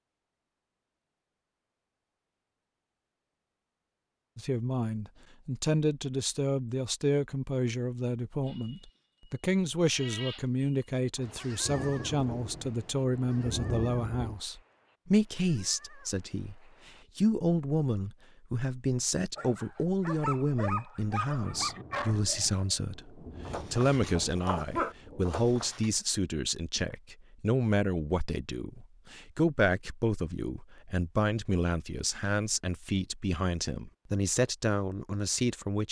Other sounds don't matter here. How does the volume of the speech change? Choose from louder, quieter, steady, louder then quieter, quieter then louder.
steady.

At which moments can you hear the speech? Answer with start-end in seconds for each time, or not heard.
4.3-35.8.